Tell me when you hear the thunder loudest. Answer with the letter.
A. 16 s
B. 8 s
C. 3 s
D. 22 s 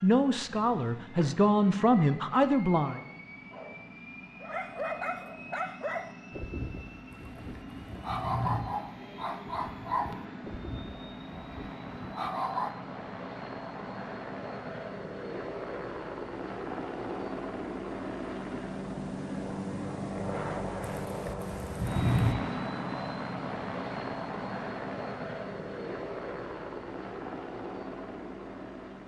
D.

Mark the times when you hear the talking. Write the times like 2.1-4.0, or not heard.
0.0-3.0.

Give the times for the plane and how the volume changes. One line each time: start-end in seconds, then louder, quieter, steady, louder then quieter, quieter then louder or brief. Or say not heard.
0.0-29.0 louder.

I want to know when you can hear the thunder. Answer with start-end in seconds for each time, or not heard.
7.1-8.7, 20.8-22.4.